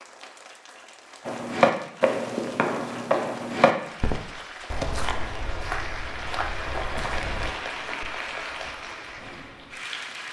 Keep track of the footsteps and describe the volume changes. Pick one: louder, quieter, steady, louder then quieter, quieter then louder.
quieter.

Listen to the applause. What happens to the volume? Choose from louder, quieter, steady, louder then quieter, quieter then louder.
louder.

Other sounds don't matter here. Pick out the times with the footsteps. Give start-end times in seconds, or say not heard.
1.2-7.5.